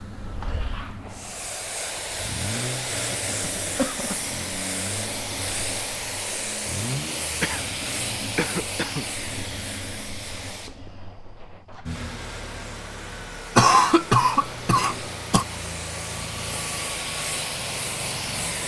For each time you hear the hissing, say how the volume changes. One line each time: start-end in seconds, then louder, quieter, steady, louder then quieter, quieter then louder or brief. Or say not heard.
0.0-18.6 quieter then louder.